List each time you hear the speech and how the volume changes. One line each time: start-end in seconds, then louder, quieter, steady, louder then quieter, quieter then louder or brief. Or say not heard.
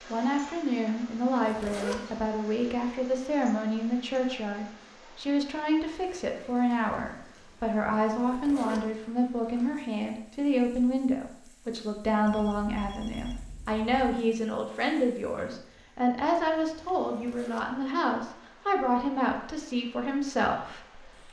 0.1-21.2 steady.